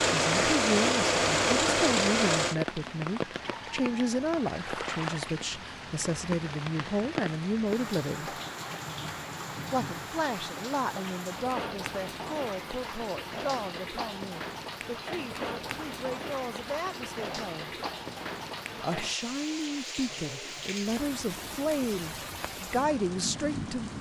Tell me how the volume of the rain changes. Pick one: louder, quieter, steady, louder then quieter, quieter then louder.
steady.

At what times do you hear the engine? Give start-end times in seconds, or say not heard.
0.0-2.5.